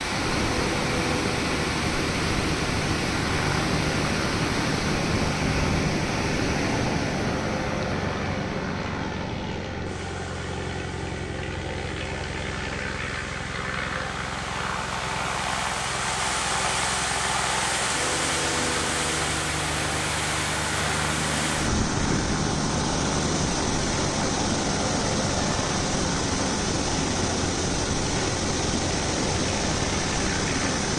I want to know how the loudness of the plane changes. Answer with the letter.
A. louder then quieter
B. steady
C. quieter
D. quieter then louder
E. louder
B.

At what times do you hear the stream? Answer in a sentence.
The stream can be heard from 0.0 to 30.9 s.